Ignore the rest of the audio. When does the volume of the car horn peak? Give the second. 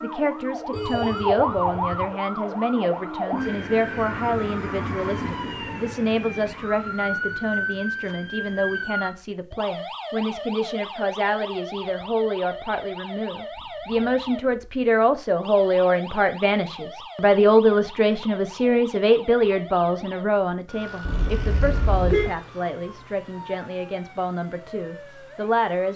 22 s.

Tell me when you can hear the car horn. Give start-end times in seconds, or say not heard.
0.7-2.0, 21.1-22.4.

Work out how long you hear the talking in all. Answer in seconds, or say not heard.
26 s.